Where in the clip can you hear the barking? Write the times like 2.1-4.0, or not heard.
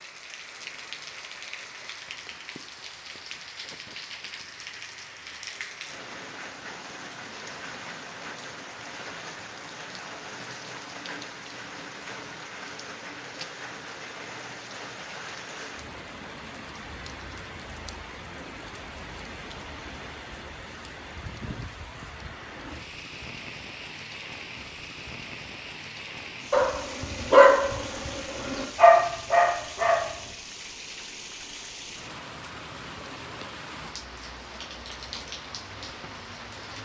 26.5-30.1.